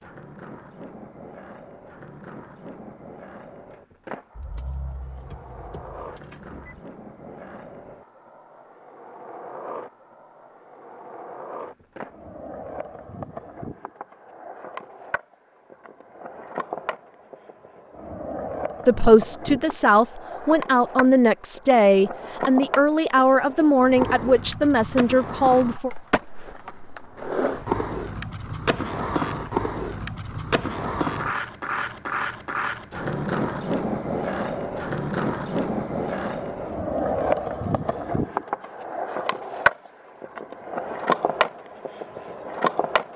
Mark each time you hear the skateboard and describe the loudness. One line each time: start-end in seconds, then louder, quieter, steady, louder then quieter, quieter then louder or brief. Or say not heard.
0.0-43.1 louder.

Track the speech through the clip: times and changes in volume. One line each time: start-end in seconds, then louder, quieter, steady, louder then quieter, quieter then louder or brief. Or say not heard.
18.9-25.9 steady.